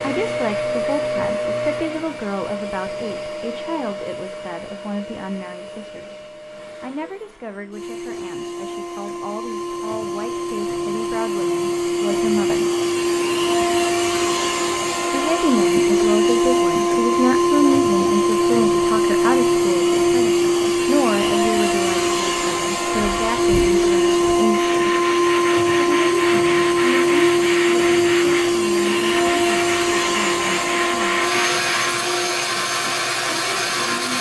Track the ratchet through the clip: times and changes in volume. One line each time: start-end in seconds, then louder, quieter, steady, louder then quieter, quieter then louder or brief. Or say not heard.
not heard.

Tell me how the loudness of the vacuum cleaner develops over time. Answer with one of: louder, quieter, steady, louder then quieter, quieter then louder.
louder.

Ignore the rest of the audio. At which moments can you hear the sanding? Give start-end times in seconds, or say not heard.
22.9-32.0.